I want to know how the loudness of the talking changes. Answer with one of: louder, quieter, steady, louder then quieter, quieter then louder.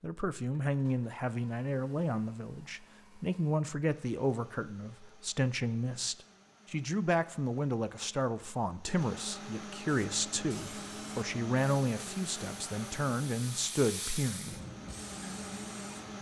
steady.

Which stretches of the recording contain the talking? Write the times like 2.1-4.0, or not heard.
0.0-14.6.